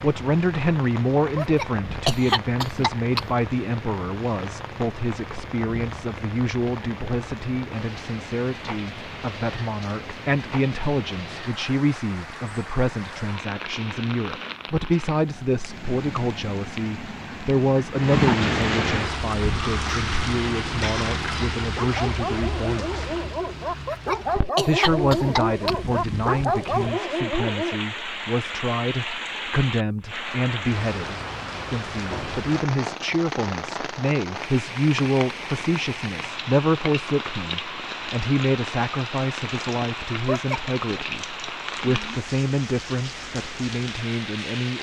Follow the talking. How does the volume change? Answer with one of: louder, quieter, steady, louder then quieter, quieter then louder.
steady.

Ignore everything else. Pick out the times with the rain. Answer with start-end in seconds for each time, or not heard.
0.0-44.7.